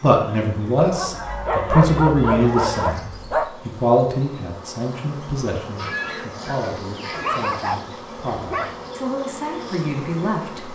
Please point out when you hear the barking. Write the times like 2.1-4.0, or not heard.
0.8-3.5, 7.1-8.8.